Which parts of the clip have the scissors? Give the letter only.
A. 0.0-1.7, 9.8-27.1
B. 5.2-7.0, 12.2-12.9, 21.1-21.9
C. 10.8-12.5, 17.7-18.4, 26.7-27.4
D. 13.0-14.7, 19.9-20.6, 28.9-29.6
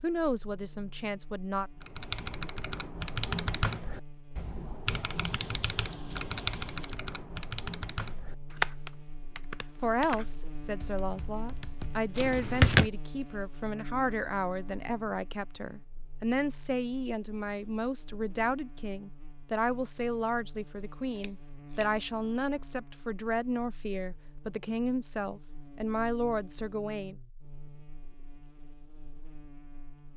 B.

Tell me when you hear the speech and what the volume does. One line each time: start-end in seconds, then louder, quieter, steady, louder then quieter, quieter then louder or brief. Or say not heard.
0.0-1.7 brief
9.8-27.1 steady.